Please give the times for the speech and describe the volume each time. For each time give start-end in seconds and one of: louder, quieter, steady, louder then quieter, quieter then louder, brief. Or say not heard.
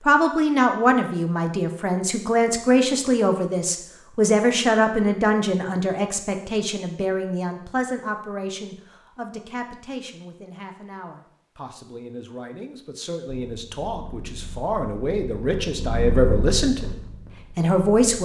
0.1-16.9 quieter then louder
17.6-18.2 brief.